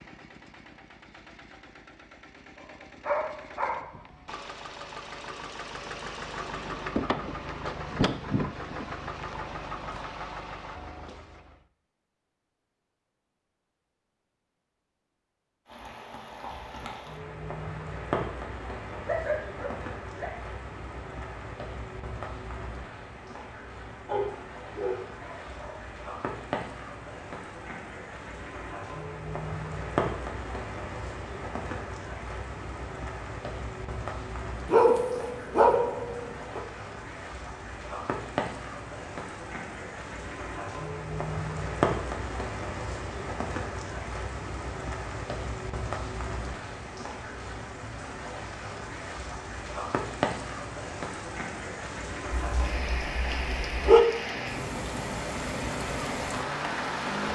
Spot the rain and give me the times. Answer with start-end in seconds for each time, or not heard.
15.7-57.3.